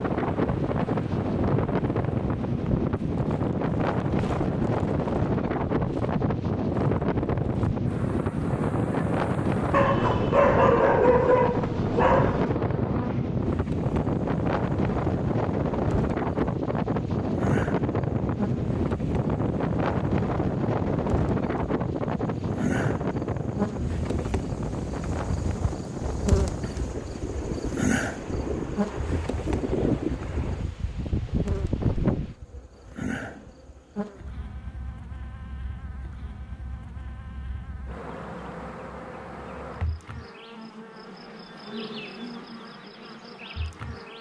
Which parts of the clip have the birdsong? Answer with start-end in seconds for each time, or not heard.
not heard.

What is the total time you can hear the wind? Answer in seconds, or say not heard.
32 s.